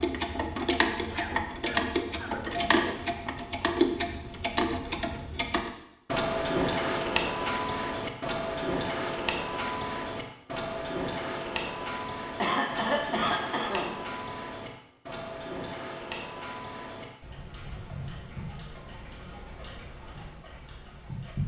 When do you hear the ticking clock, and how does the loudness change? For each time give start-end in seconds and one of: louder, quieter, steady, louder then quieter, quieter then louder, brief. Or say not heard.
0.0-21.4 quieter.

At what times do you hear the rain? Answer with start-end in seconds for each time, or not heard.
not heard.